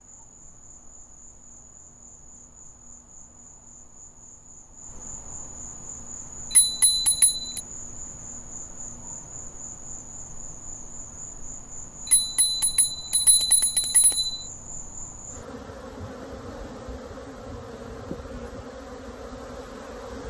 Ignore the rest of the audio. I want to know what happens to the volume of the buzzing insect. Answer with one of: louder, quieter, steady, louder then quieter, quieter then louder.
louder.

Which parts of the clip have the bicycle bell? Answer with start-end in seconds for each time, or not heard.
6.5-7.6, 12.1-14.3.